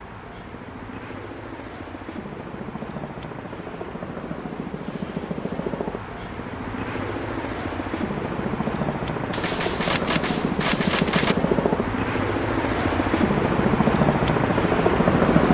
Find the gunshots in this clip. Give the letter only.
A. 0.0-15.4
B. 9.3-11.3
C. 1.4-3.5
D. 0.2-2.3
B.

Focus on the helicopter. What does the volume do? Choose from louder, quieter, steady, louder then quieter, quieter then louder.
louder.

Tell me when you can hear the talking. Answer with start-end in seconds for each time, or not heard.
not heard.